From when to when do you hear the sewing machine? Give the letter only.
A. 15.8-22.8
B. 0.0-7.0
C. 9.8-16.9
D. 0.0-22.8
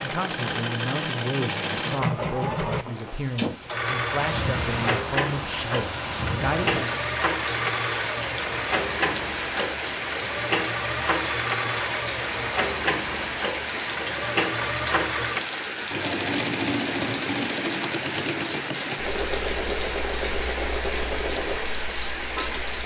D.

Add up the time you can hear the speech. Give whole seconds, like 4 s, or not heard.
7 s.